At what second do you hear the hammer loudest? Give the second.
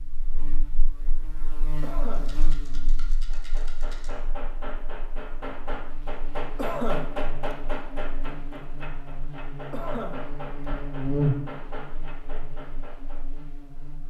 7 s.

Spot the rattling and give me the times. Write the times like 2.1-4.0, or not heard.
2.1-4.2.